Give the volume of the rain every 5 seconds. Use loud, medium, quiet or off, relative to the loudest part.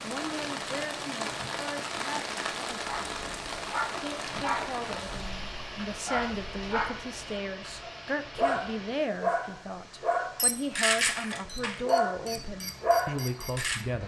loud, medium, quiet.